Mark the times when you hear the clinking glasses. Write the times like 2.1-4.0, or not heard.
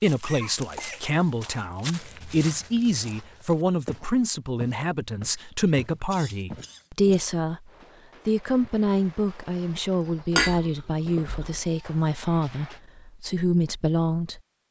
10.3-11.6.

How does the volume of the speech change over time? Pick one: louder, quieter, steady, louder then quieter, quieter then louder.
steady.